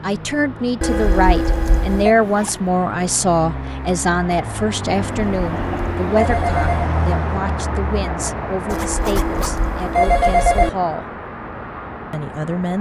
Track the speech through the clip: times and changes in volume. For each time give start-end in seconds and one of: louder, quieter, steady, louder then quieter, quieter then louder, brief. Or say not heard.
0.0-11.1 quieter
12.1-12.7 brief.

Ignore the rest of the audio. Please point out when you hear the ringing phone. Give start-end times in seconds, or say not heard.
0.8-2.1, 4.9-6.9, 8.7-10.7.